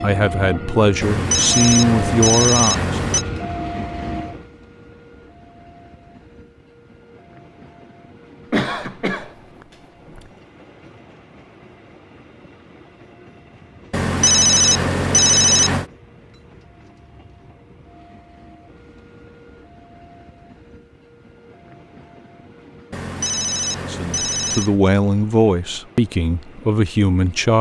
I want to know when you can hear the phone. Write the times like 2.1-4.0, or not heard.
1.0-3.2, 13.9-15.8, 22.9-24.8.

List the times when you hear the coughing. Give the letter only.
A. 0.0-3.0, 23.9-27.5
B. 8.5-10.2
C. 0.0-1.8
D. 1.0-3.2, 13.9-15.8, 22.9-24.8
B.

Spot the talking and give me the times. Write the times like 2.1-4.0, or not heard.
0.0-3.0, 23.9-27.5.